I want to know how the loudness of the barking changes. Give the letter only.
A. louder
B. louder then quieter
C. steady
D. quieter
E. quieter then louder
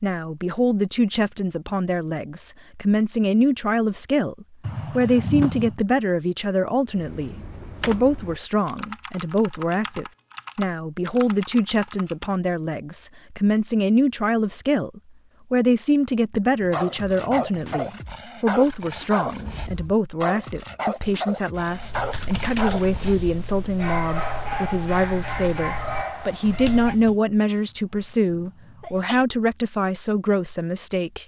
C.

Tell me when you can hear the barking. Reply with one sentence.
The barking can be heard from 16.6 to 26.9 s.